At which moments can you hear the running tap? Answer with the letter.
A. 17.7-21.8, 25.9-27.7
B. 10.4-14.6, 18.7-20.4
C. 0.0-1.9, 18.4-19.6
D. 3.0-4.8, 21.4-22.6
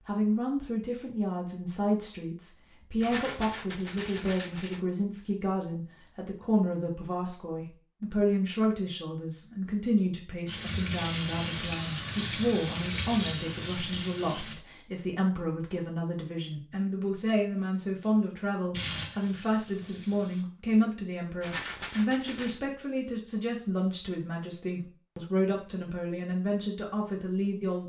B.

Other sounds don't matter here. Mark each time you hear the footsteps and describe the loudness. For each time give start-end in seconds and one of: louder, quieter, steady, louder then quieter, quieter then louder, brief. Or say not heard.
not heard.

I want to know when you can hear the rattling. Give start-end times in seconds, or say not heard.
3.0-4.8, 21.4-22.6.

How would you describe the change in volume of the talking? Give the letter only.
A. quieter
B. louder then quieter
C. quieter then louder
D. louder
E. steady
E.